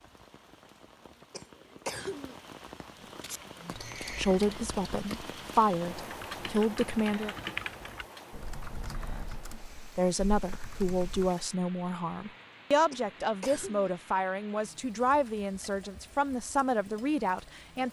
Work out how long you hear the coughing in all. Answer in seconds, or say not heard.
2 s.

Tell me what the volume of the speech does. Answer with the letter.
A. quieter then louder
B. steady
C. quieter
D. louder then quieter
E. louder
B.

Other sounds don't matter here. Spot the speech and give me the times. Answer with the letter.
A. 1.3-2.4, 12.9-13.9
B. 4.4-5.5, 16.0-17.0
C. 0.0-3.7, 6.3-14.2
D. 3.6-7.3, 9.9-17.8
D.